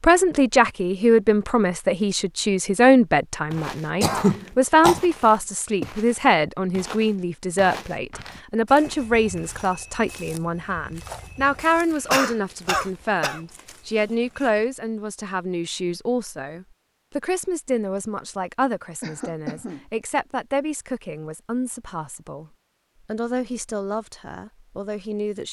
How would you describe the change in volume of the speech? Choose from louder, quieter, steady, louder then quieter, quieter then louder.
quieter.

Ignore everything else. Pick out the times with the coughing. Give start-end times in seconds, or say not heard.
4.0-5.0, 11.9-13.4, 19.0-19.9.